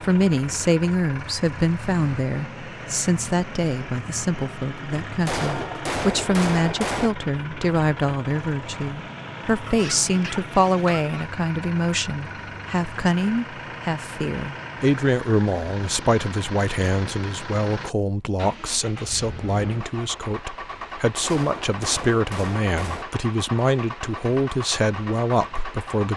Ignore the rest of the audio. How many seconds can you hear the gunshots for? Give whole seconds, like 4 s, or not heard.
4 s.